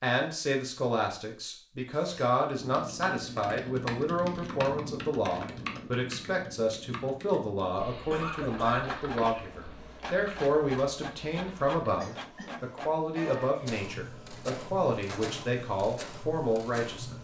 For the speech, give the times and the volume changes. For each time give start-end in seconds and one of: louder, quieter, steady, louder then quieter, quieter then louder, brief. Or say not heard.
0.0-17.1 steady.